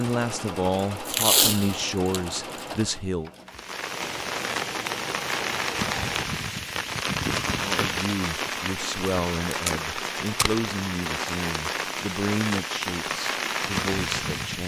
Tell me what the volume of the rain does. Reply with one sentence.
The loudness of the rain stays about the same.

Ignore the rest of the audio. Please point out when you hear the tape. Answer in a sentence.
The tape can be heard from 1.1 to 2.9 s and from 9.5 to 10.6 s.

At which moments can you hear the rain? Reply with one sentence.
The rain can be heard from 3.5 to 14.6 s.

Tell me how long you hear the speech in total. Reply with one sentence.
The speech can be heard for 10 seconds in total.